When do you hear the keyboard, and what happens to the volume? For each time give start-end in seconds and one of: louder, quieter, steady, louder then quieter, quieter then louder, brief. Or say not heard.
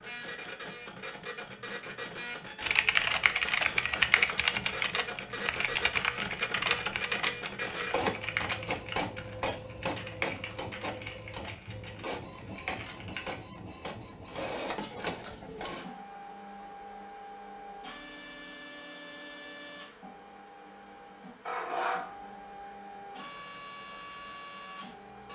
2.6-13.3 quieter.